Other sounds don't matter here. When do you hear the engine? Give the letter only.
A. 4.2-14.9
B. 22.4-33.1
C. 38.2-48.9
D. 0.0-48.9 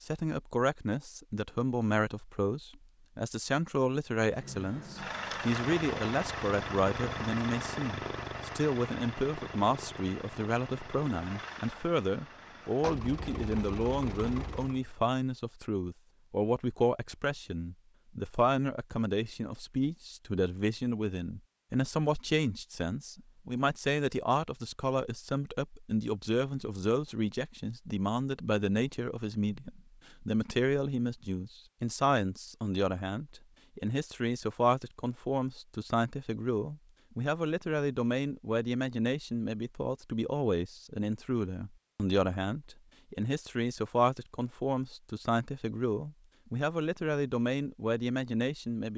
A.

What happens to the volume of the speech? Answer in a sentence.
The volume of the speech stays about the same.